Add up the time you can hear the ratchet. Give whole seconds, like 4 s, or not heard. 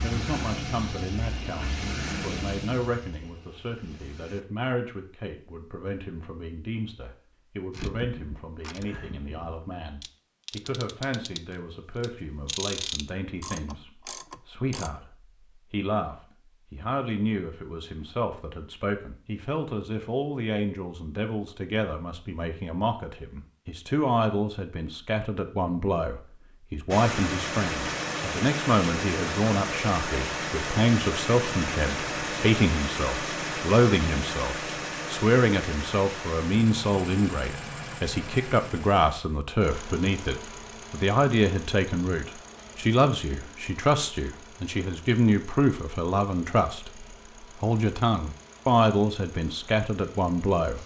7 s.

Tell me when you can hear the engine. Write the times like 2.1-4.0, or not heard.
0.0-4.5, 26.9-50.8.